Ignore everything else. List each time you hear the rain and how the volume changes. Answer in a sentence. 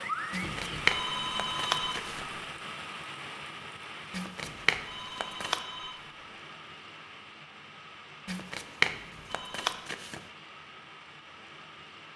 You can hear the rain from 0.0 to 12.1 s, getting quieter.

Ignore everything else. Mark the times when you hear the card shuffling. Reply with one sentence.
You can hear the card shuffling from 0.3 to 2.2 s, from 4.1 to 5.6 s and from 8.2 to 10.2 s.